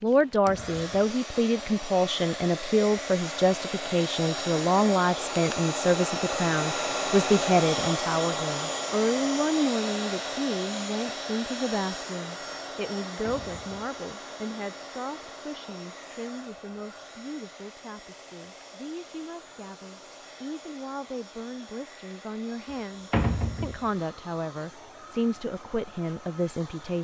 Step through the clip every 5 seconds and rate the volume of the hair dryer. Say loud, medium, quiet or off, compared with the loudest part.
medium, loud, medium, quiet, quiet, quiet.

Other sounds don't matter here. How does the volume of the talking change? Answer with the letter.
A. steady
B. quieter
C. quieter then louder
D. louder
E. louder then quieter
C.